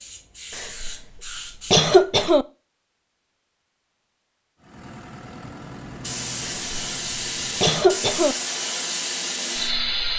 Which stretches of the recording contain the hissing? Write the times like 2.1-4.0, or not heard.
0.0-1.9, 5.8-10.1.